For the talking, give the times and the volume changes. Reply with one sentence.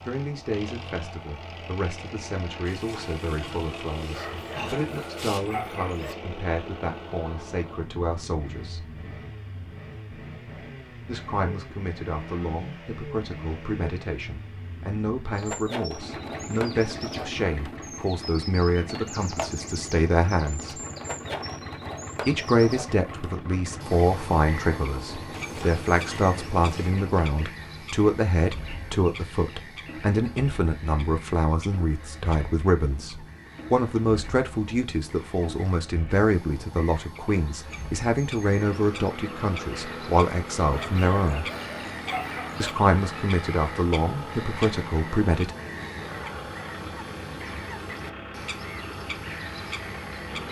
The talking can be heard from 0.1 to 8.8 s, at a steady volume; from 11.1 to 20.8 s, getting louder; from 22.2 to 41.5 s, at a steady volume; and briefly from 42.6 to 45.5 s.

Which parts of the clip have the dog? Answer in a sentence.
The dog can be heard from 4.1 to 6.2 s and from 40.7 to 42.8 s.